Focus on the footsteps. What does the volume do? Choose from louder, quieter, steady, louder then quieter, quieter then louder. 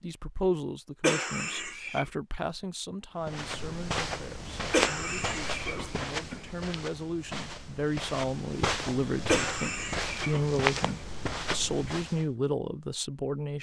quieter then louder.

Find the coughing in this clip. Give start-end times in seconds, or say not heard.
1.0-2.0, 4.7-6.4, 9.2-10.9.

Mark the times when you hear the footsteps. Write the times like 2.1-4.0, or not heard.
3.2-12.2.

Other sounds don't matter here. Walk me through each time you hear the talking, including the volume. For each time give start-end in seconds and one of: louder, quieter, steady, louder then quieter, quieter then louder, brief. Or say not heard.
0.0-13.5 quieter then louder.